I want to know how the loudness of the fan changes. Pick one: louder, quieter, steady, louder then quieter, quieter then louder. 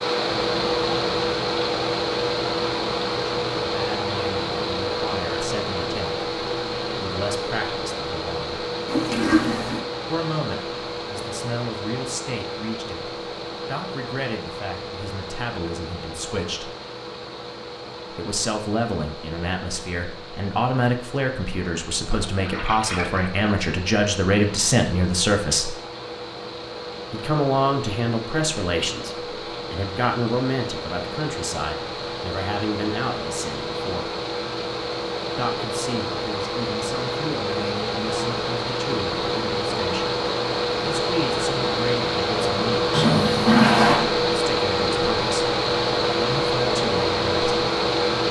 quieter then louder.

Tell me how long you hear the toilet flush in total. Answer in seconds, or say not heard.
3 s.